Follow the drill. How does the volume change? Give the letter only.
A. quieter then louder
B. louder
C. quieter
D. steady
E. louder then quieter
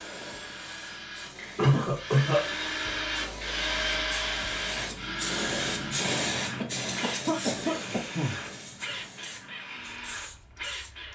E.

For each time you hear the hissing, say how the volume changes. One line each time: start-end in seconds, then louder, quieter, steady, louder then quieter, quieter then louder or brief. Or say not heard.
0.0-11.1 louder then quieter.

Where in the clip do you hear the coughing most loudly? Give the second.
2 s.